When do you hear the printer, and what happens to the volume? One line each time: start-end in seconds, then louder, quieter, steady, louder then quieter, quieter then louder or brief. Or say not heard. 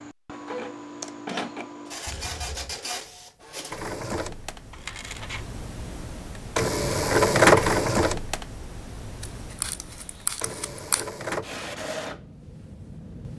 0.0-13.3 louder then quieter.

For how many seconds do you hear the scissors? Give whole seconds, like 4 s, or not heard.
3 s.